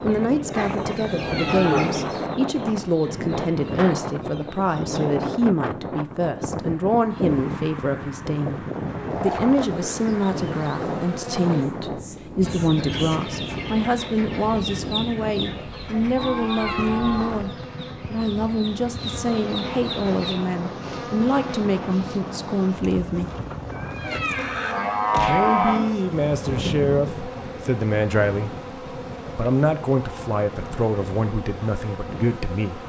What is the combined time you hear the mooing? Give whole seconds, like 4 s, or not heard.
5 s.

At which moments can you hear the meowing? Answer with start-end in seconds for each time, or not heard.
0.9-1.6, 16.2-16.9, 23.7-25.4.